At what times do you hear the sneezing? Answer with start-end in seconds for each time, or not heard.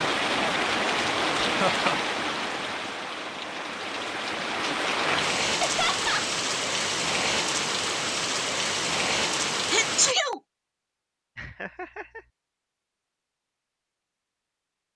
9.7-10.4.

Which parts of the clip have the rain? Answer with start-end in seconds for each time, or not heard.
0.0-10.2.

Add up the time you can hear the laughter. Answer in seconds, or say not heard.
2 s.